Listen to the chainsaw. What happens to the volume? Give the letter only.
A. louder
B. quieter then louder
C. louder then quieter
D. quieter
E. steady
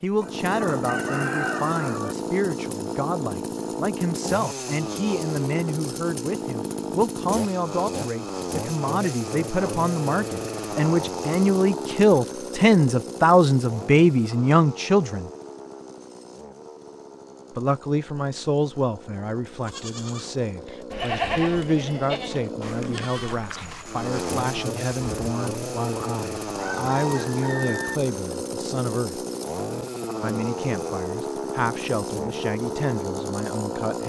B.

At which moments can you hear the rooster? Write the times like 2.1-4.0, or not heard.
0.2-2.1, 26.6-28.0.